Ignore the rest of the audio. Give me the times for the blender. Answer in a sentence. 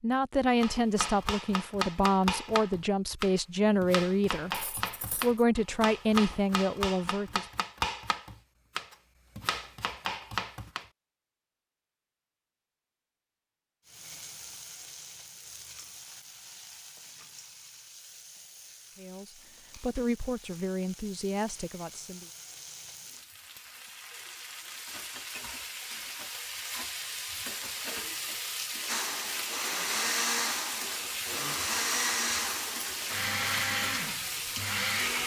You can hear the blender from 28.9 to 35.2 s.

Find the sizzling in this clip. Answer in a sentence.
The sizzling can be heard from 13.8 to 35.2 s.